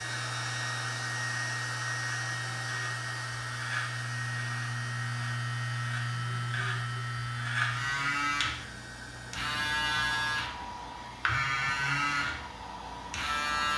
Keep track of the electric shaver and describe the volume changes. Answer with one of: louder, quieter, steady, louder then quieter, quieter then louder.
louder.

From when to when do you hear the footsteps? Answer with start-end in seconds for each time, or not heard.
not heard.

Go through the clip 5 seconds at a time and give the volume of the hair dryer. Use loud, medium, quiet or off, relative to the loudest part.
loud, medium, medium.